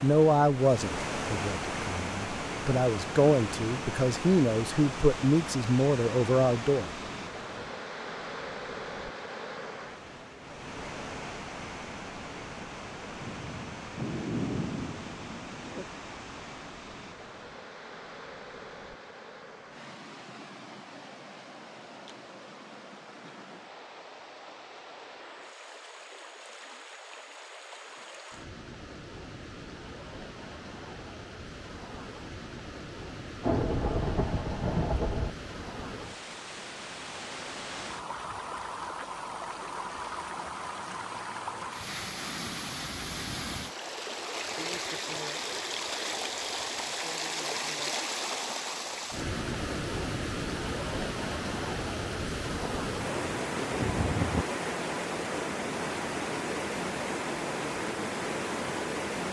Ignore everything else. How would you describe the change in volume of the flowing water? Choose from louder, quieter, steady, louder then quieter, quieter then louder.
quieter then louder.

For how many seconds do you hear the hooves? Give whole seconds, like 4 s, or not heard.
not heard.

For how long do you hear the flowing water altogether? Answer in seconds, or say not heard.
59 s.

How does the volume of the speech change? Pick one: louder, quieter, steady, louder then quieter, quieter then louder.
quieter then louder.